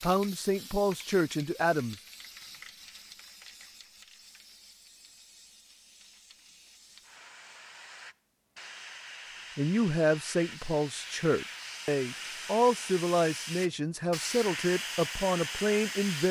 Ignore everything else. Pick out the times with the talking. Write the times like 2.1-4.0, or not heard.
0.0-1.9, 9.6-16.2.